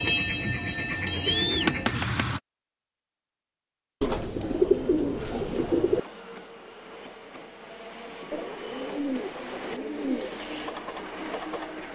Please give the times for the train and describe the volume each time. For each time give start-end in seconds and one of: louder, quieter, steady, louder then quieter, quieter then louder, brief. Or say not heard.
0.0-2.4 brief
5.2-11.9 louder.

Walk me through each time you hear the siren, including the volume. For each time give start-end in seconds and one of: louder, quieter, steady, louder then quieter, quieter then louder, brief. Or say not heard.
not heard.